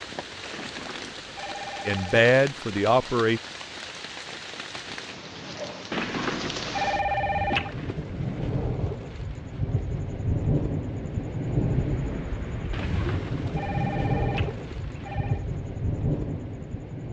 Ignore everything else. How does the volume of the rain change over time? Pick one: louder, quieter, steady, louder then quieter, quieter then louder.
louder.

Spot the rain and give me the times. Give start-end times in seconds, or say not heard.
0.0-17.0.